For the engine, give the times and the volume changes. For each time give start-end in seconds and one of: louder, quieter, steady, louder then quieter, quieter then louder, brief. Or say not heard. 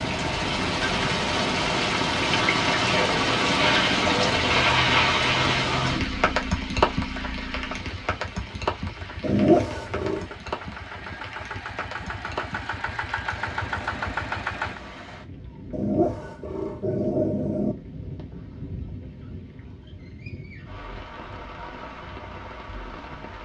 0.0-14.8 quieter then louder.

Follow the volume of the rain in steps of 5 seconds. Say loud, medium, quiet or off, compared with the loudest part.
loud, loud, quiet, quiet, quiet.